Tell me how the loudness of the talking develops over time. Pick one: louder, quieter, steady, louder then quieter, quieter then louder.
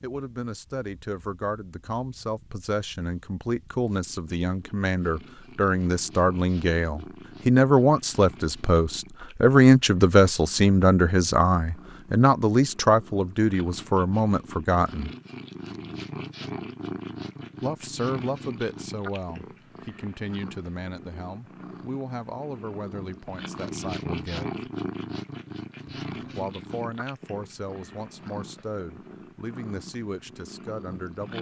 louder then quieter.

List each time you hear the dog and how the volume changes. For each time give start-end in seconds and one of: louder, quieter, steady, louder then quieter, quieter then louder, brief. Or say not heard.
not heard.